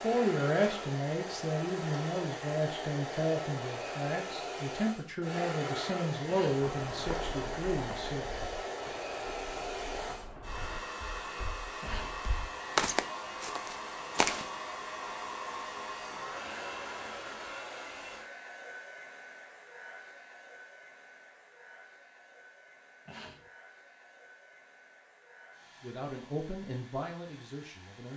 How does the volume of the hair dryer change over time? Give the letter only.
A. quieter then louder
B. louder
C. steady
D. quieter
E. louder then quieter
D.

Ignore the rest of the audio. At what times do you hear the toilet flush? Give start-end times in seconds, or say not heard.
not heard.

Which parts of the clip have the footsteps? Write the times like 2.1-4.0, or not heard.
6.6-14.5.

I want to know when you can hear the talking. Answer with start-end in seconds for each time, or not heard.
0.0-8.3, 25.8-28.1.